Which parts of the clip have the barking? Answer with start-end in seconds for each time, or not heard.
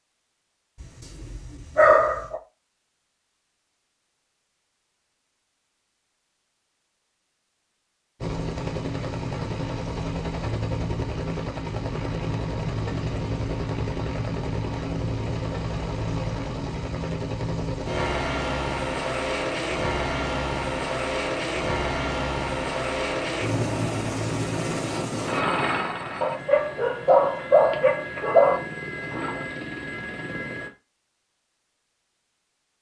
0.8-2.4, 26.2-28.6.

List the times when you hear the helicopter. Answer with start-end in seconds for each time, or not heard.
8.2-30.7.